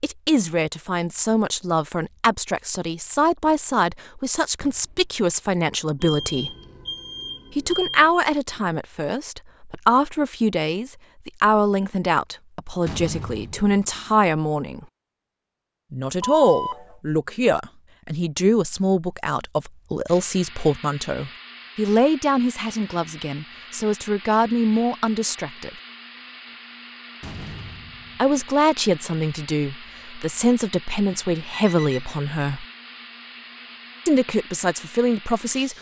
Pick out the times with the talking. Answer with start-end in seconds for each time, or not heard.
0.0-6.5, 7.5-14.8, 15.9-25.7, 28.1-32.6, 34.0-35.7.